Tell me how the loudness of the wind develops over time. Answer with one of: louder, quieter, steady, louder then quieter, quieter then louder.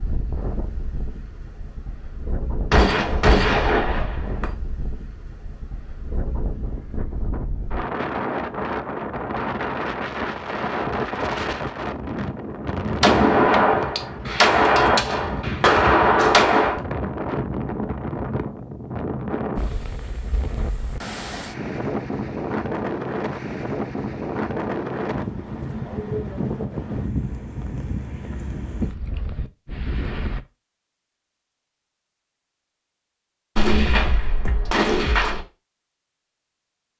louder.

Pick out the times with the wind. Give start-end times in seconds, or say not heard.
0.0-30.4.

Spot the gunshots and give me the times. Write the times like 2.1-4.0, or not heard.
2.7-4.5, 13.0-16.8, 33.5-35.5.